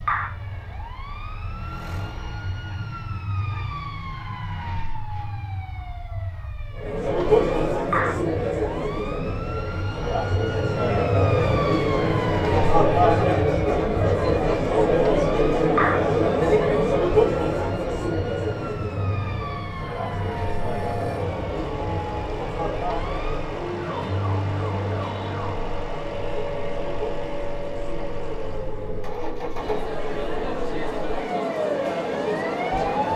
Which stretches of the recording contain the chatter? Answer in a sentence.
You can hear the chatter from 6.8 to 33.1 s.